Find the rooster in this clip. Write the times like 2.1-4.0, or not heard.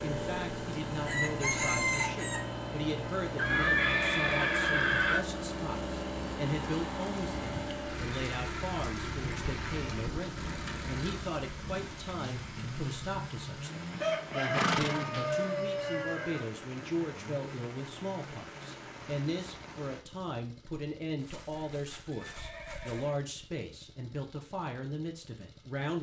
1.1-2.5, 14.0-17.1.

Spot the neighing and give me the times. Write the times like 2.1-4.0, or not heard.
3.4-5.2, 13.9-15.4, 21.2-23.2.